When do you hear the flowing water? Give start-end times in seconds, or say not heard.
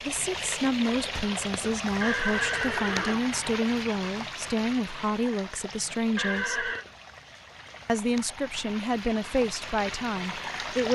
0.0-10.9.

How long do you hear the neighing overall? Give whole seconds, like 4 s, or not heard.
2 s.